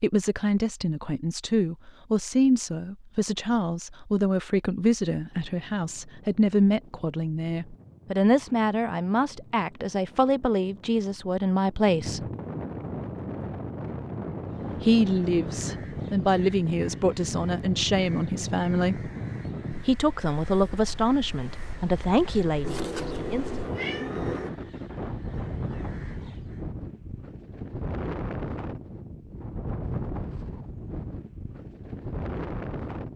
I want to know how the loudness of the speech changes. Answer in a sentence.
The loudness of the speech stays about the same.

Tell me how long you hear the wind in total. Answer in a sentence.
You can hear the wind for 28 seconds altogether.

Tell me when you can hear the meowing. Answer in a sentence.
The meowing can be heard from 22.6 to 24.5 s.